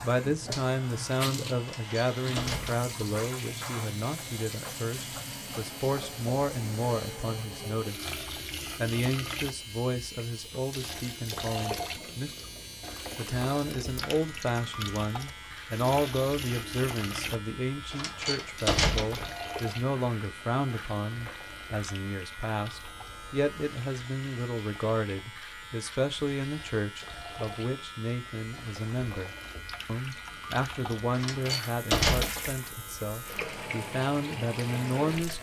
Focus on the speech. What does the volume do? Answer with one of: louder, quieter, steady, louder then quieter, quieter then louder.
steady.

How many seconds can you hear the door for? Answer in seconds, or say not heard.
4 s.